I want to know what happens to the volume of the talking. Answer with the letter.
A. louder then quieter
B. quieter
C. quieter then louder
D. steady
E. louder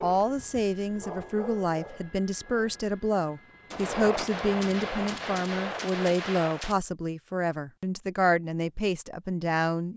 D.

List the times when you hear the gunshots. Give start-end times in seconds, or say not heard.
3.7-6.8.